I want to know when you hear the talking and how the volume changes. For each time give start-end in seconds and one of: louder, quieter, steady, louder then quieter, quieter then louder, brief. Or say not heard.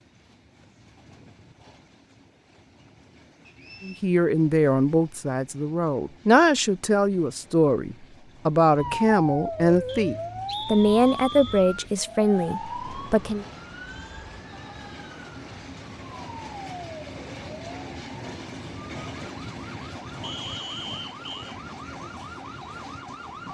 3.8-13.4 steady.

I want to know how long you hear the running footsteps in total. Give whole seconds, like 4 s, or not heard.
not heard.